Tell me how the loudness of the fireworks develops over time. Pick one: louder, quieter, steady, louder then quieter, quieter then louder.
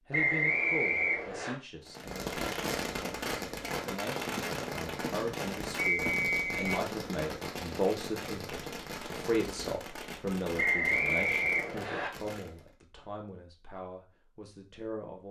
quieter.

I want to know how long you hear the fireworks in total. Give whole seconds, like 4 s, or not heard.
11 s.